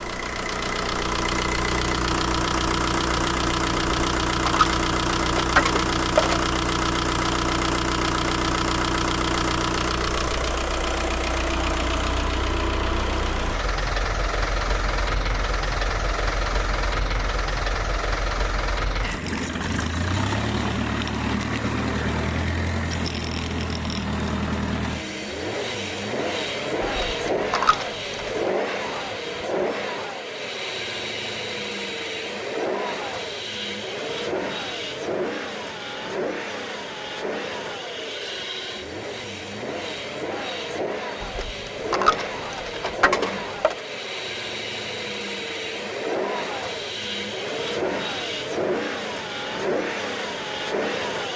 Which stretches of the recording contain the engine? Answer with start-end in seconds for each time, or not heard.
0.0-51.3.